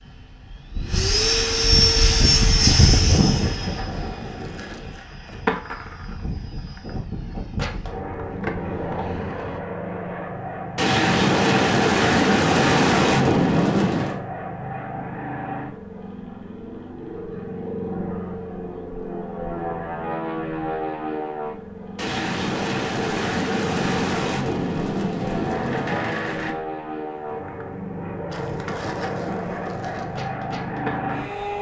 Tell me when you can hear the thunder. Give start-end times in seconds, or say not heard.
10.8-14.2, 21.9-26.6.